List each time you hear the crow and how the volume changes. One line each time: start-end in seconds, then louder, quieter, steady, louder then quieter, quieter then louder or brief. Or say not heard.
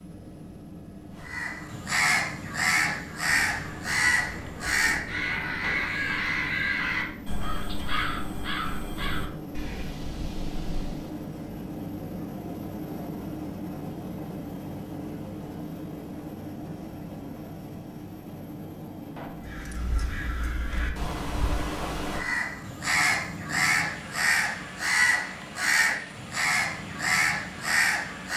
1.1-11.2 quieter
19.4-28.3 louder.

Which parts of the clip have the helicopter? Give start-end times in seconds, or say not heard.
0.0-28.3.